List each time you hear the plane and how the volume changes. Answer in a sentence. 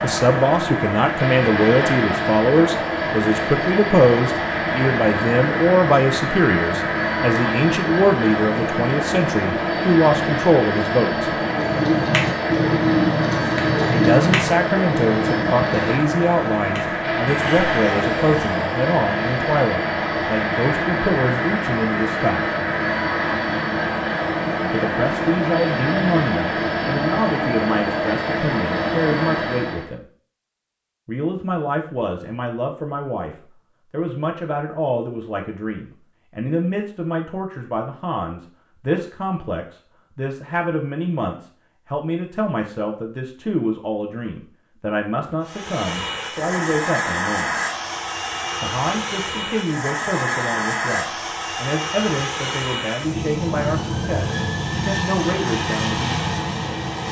You can hear the plane from 0.0 to 29.9 s, at a steady volume; and from 45.4 to 57.0 s, at a steady volume.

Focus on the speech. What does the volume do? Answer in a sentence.
The loudness of the speech goes down.